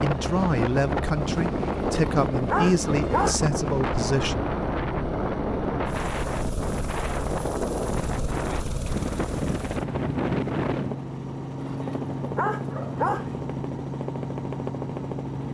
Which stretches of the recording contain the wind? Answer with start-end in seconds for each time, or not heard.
0.0-11.0.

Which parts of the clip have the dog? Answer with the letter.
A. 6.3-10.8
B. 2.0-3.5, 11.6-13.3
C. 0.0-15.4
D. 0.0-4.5
B.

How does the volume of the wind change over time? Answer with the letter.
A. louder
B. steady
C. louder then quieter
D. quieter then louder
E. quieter
B.